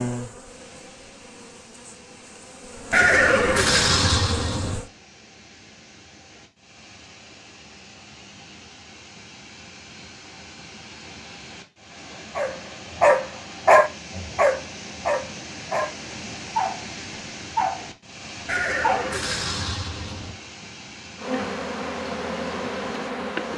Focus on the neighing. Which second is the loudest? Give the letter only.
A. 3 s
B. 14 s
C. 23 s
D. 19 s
A.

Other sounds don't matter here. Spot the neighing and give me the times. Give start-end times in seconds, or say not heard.
2.9-4.8, 18.4-20.4.